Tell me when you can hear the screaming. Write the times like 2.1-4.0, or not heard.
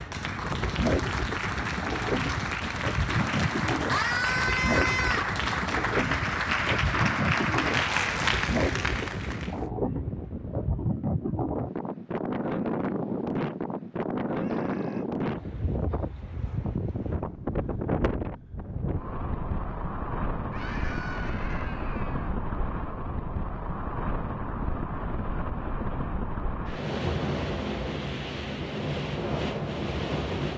3.9-5.3, 14.3-15.1, 20.5-22.4.